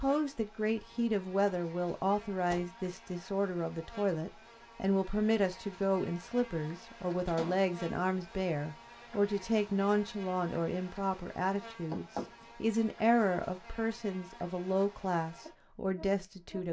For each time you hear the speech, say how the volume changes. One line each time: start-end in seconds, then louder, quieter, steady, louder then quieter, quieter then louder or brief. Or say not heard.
0.0-16.6 steady.